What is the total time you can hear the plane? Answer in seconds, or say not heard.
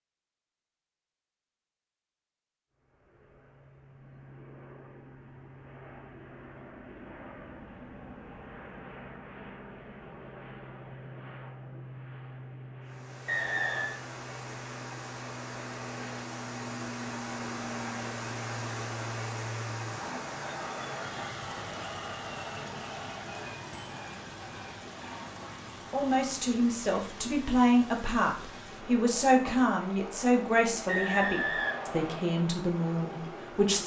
31 s.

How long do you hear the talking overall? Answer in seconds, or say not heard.
8 s.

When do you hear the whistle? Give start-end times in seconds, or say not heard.
13.2-13.9, 30.9-32.3.